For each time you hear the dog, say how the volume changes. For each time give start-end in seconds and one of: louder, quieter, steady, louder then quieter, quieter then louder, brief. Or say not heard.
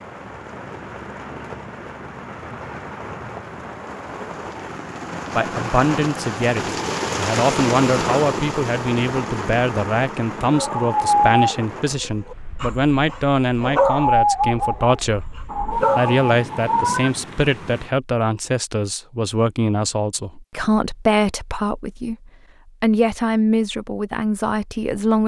10.5-15.0 quieter then louder
15.8-16.4 brief.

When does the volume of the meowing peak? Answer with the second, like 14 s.
17 s.